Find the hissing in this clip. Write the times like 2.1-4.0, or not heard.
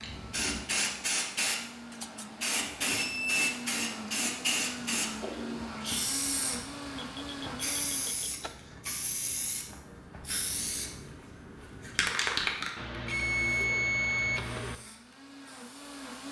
0.0-16.2.